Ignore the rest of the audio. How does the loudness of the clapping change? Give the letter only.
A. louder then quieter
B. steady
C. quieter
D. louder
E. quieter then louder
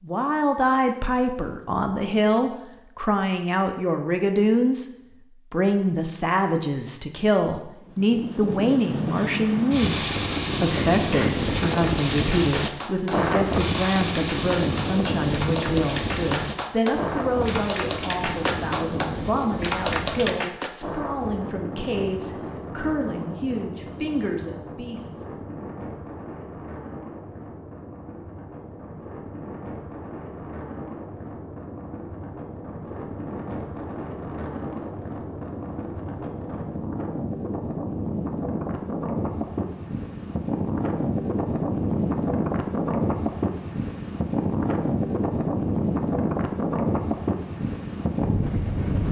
D.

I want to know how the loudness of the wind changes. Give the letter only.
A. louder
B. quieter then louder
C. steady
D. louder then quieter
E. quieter
B.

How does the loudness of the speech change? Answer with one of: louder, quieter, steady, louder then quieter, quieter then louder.
quieter.